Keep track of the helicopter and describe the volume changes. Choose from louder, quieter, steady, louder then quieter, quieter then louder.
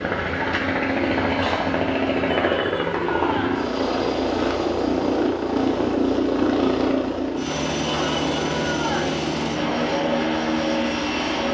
steady.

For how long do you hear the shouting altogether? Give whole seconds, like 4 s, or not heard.
3 s.